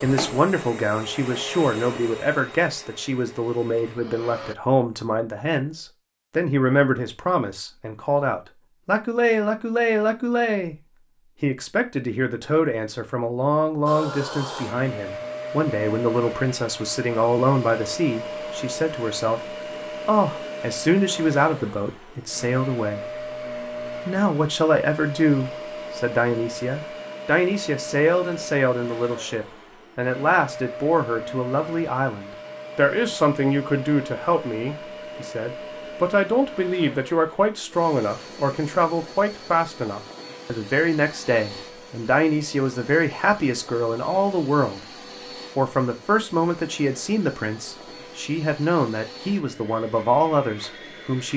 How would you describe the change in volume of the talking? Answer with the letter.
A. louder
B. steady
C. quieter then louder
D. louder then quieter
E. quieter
B.